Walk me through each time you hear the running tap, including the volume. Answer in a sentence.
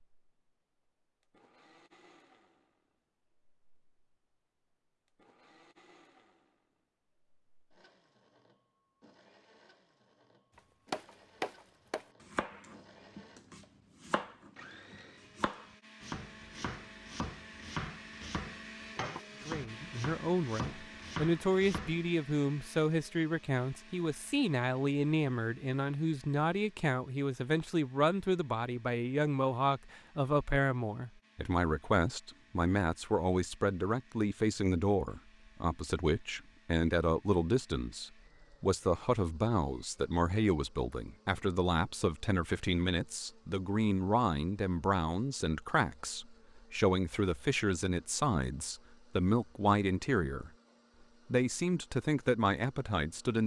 The running tap can't be heard in this clip.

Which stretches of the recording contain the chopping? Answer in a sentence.
The chopping can be heard from 10.6 to 22.1 s.